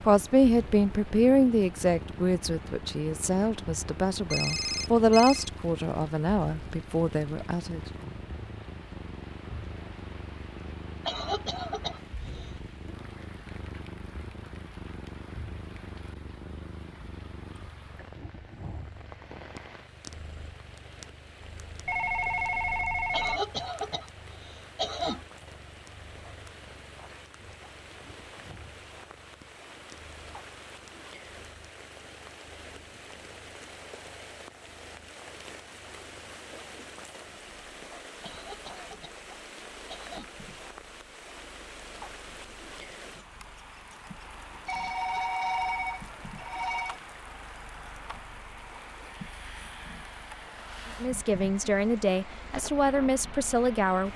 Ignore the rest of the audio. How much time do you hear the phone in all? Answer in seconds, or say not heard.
5 s.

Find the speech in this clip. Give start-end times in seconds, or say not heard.
0.0-7.8, 51.0-54.1.